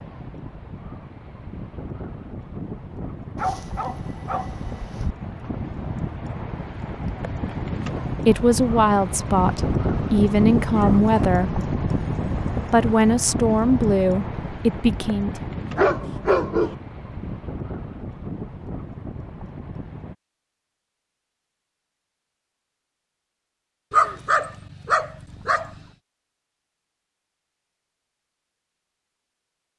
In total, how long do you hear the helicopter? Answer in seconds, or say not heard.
not heard.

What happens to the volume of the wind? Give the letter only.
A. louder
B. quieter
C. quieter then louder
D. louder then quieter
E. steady
D.